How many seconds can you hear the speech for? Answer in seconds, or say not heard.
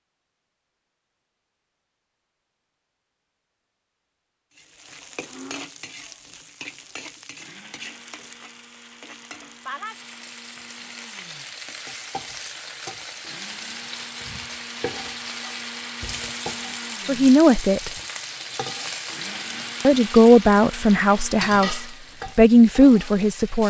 5 s.